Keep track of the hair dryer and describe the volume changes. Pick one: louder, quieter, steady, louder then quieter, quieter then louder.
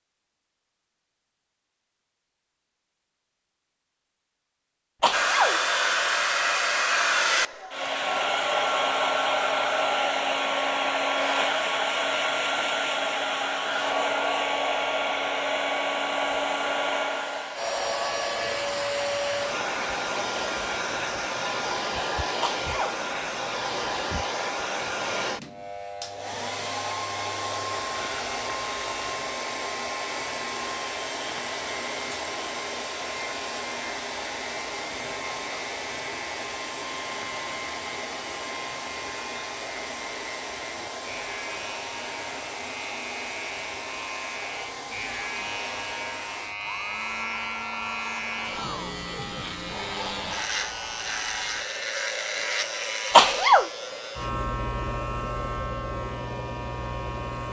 quieter.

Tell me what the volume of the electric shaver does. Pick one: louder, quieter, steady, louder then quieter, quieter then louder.
louder.